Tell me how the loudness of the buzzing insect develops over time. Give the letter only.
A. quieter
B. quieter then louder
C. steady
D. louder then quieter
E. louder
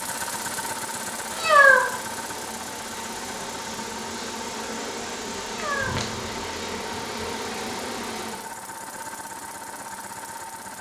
E.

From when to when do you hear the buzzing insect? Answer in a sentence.
You can hear the buzzing insect from 0.0 to 8.5 s.